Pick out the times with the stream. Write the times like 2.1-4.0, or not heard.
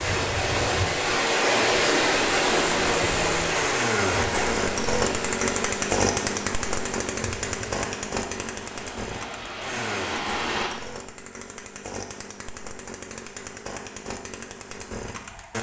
0.0-10.7.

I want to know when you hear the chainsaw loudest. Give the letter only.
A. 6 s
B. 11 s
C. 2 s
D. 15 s
A.